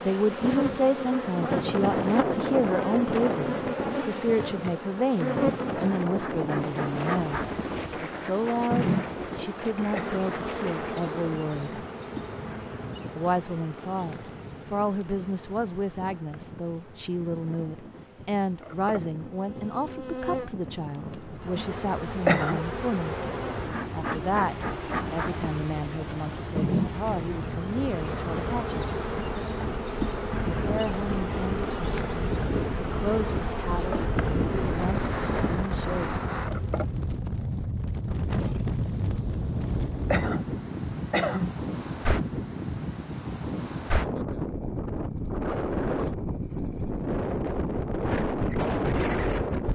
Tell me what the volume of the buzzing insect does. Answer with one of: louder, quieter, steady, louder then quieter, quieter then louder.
quieter then louder.